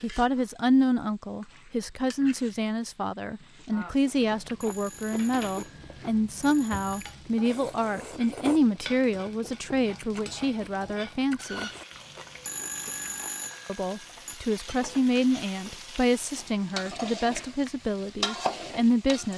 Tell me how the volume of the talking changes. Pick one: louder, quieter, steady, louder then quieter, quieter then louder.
steady.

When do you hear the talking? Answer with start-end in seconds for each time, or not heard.
0.0-11.7, 13.7-19.3.